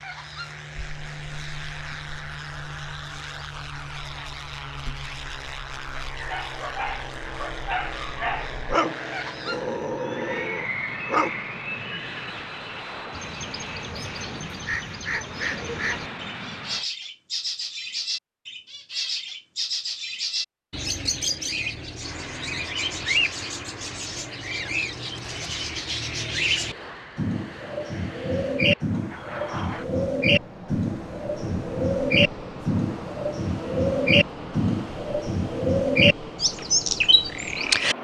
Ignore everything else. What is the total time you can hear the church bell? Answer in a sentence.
You can't hear the church bell here.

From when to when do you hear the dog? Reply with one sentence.
The dog can be heard from 6.1 to 11.3 s.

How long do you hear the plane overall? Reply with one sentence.
The plane can be heard for 33 seconds in total.